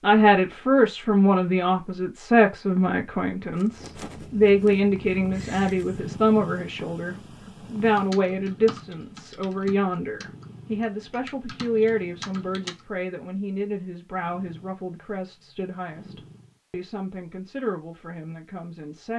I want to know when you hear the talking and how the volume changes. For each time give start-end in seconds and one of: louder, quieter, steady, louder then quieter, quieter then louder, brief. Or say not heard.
0.0-19.1 quieter.